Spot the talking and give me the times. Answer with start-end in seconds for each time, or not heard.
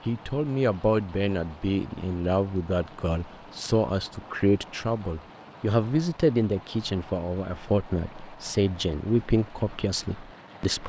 0.1-10.8.